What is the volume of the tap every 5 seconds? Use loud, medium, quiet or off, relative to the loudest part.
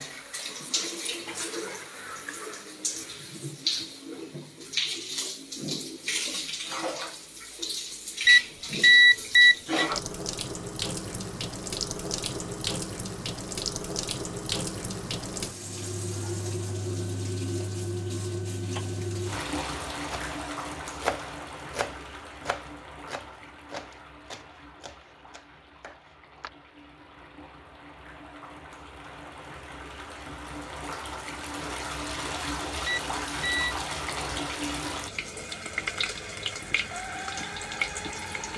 loud, loud, loud, loud, medium, quiet, loud, loud.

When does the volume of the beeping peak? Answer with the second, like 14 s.
9 s.